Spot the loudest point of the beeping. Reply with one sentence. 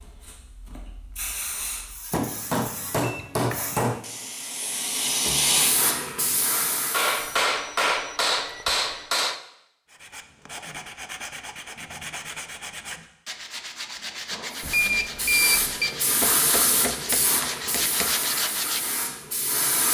The loudest moment of the beeping is at 15 seconds.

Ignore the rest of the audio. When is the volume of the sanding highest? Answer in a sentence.
The volume of the sanding peaks at 18 seconds.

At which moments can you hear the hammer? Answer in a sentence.
The hammer can be heard from 2.1 to 4.0 s, from 6.9 to 9.4 s and from 16.2 to 18.2 s.